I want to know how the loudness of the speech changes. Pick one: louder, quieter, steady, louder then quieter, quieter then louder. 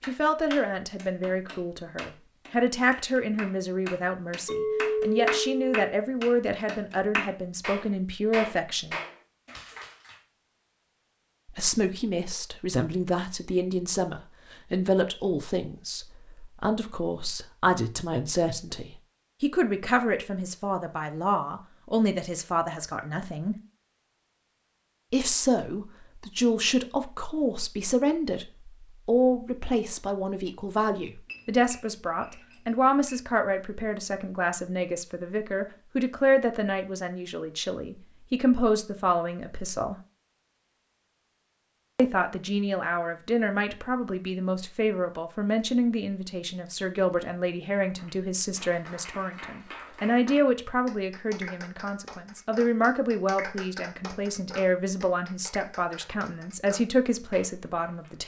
steady.